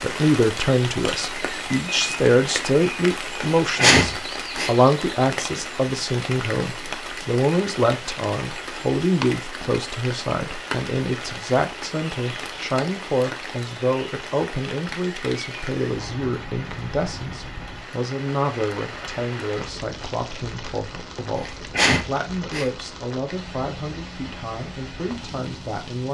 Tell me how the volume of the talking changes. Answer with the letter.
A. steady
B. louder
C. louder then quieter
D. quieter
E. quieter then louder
D.